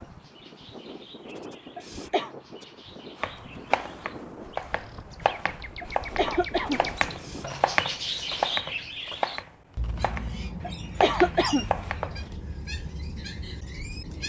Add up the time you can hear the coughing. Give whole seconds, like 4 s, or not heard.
3 s.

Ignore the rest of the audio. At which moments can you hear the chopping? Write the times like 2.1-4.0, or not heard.
3.2-12.2.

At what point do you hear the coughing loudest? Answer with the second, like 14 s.
11 s.